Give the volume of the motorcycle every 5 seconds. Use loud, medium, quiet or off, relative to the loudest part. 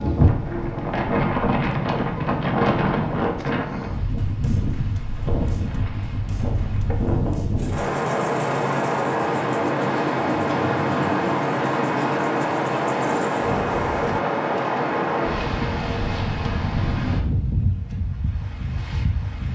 loud, loud, loud, off.